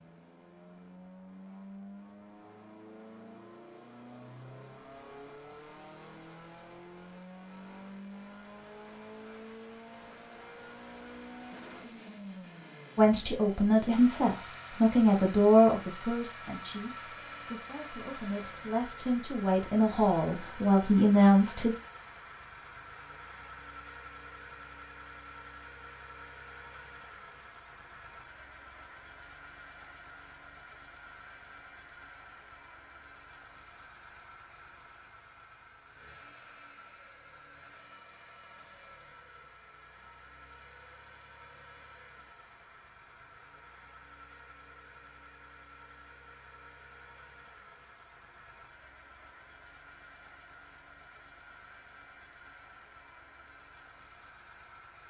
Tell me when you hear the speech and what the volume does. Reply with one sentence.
The speech can be heard from 12.9 to 21.8 s, getting quieter then louder.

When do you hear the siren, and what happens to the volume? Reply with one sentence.
You can't hear the siren here.